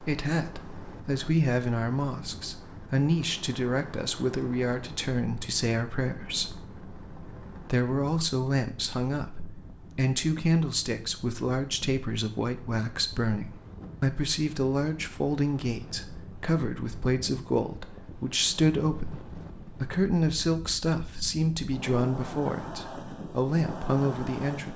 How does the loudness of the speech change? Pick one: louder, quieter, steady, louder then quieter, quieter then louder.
steady.